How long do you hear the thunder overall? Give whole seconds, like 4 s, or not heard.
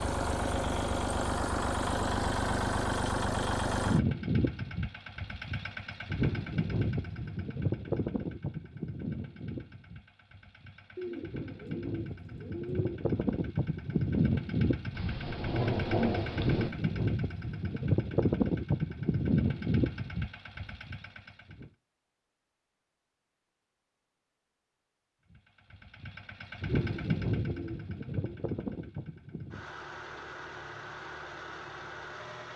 2 s.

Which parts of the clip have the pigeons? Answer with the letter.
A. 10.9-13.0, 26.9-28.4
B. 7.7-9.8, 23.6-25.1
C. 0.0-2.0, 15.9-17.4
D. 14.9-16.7
A.